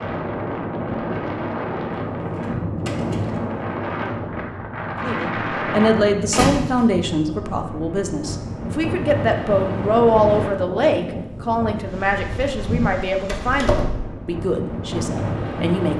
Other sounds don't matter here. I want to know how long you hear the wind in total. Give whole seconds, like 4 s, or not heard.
16 s.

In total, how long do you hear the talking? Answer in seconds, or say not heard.
11 s.